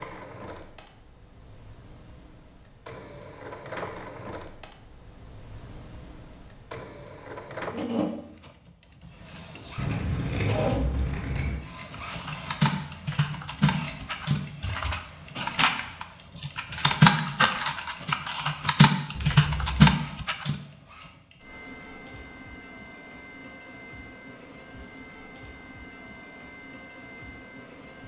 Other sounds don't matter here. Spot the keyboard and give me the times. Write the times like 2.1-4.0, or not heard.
12.1-20.6.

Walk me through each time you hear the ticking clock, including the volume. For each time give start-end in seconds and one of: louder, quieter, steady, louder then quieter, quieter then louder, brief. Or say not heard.
not heard.